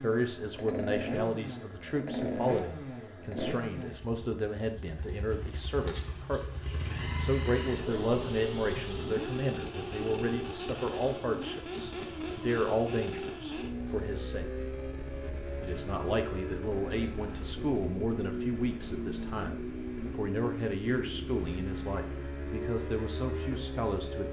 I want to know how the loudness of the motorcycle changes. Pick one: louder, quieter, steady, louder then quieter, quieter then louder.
steady.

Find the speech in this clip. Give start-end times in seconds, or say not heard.
0.0-14.5, 15.6-24.2.